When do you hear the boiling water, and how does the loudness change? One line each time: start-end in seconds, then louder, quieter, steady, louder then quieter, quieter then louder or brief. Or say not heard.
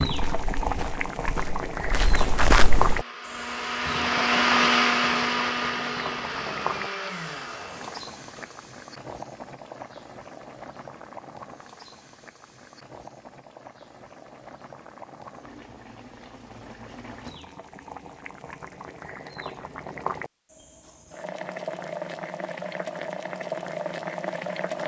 0.0-24.8 quieter then louder.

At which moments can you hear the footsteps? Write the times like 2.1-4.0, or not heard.
0.0-3.0.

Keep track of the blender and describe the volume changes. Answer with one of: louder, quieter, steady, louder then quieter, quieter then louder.
louder then quieter.